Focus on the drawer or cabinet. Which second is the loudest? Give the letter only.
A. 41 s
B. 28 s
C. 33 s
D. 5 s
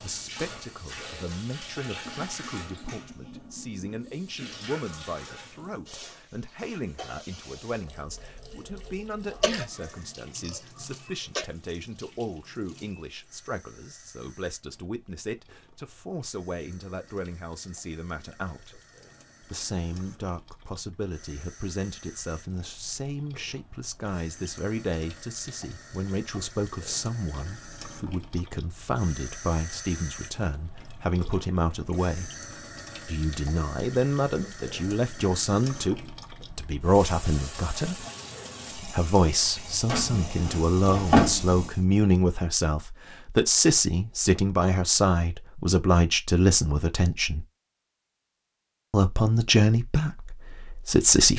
A.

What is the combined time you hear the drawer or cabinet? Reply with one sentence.
The drawer or cabinet can be heard for 2 seconds in total.